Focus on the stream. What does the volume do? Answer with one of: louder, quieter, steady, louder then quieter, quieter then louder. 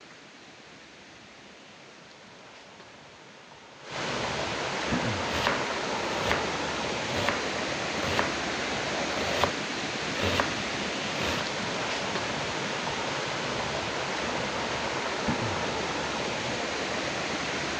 louder.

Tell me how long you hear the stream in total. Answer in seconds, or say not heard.
18 s.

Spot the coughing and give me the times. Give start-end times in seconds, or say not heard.
4.8-5.3, 15.2-15.7.